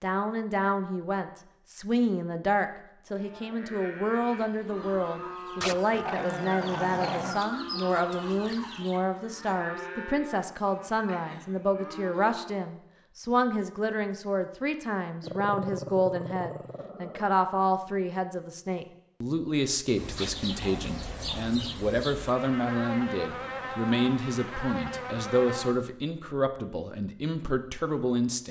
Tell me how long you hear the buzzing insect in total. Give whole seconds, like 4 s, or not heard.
6 s.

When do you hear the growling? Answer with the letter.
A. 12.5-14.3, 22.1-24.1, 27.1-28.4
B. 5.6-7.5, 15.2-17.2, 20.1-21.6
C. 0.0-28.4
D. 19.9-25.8
B.